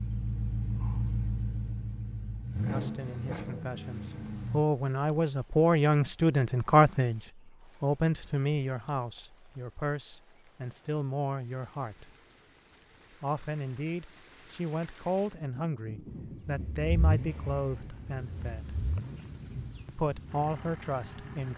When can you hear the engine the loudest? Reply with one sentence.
The loudest moment of the engine is at 1 second.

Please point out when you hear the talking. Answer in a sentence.
You can hear the talking from 2.7 to 7.2 s, from 7.8 to 12.1 s, from 13.2 to 18.8 s and from 19.9 to 21.5 s.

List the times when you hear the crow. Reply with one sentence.
You can't hear the crow here.